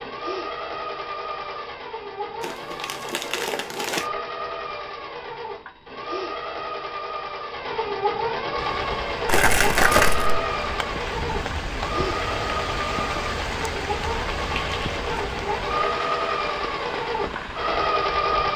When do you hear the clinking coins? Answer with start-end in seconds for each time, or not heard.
not heard.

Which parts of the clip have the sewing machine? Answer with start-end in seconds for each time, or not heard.
0.0-18.5.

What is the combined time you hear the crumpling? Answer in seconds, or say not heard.
3 s.